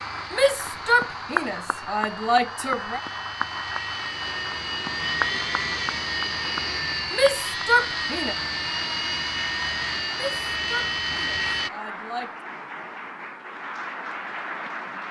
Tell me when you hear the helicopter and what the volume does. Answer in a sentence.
You can hear the helicopter from 0.0 to 11.7 s, getting louder.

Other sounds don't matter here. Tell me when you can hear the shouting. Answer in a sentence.
You can hear the shouting from 0.3 to 3.0 s, from 7.1 to 8.3 s and from 10.1 to 12.3 s.